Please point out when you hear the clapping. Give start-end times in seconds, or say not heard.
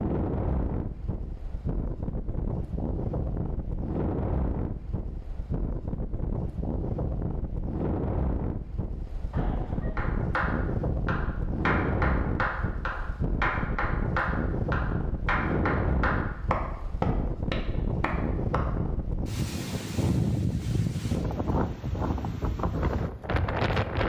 9.9-18.6.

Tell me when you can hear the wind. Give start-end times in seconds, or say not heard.
0.0-24.0.